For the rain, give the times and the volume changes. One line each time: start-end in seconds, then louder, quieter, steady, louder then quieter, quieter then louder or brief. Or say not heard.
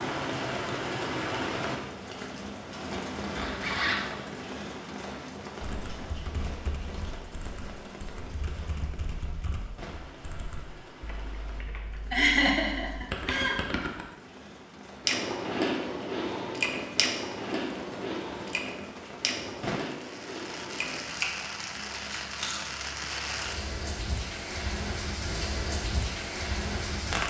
0.0-27.2 quieter then louder.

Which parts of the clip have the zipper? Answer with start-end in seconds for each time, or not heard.
2.9-4.3.